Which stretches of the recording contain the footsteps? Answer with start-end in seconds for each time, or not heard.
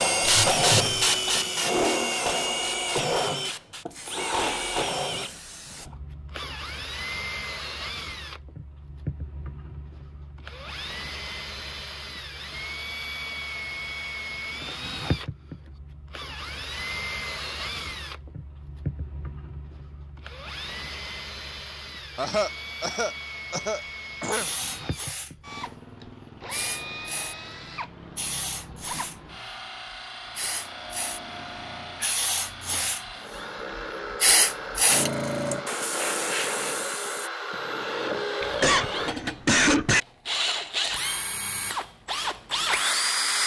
not heard.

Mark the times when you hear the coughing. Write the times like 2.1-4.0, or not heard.
0.2-1.3, 22.1-24.4, 38.4-40.0.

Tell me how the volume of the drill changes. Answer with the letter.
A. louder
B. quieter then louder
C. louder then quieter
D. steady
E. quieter
B.